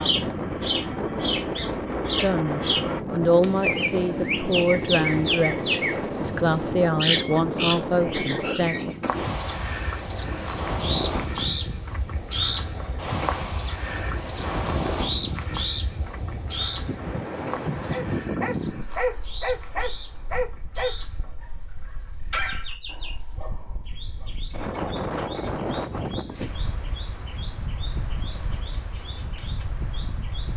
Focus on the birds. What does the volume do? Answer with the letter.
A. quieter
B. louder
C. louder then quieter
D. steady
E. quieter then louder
A.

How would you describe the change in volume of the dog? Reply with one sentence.
The volume of the dog goes down.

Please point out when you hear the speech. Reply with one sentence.
You can hear the speech from 2.2 to 8.8 s.